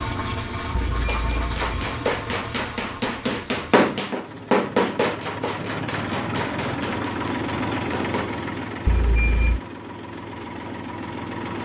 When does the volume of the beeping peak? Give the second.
9 s.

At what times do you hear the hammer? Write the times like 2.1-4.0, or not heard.
0.9-8.3.